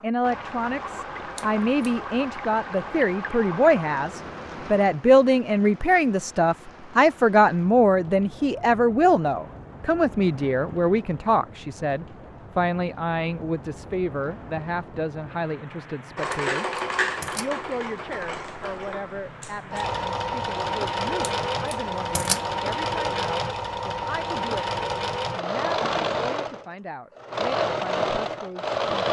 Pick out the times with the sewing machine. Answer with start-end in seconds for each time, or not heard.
16.1-29.0.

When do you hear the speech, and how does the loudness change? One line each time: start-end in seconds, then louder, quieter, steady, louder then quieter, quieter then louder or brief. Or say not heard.
0.0-28.8 quieter.